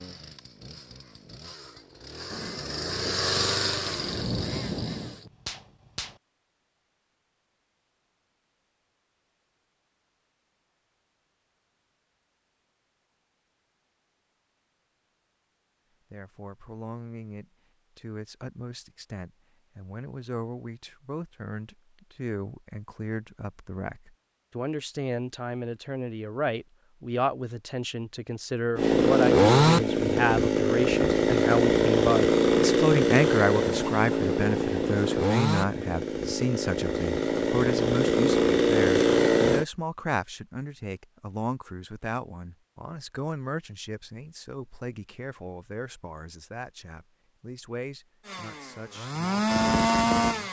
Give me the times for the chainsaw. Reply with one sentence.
You can hear the chainsaw from 0.0 to 5.3 s, from 28.8 to 39.6 s and from 48.2 to 50.4 s.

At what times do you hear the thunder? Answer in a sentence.
You can hear the thunder from 2.3 to 6.2 s.